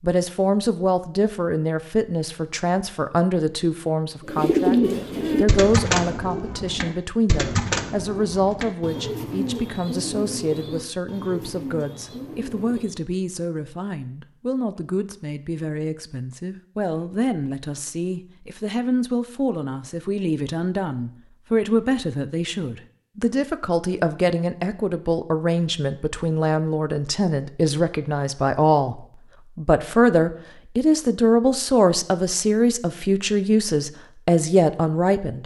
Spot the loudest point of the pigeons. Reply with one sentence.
The volume of the pigeons peaks at 5 seconds.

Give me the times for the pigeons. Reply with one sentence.
You can hear the pigeons from 4.2 to 13.1 s.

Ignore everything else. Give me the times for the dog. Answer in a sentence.
You can't hear the dog here.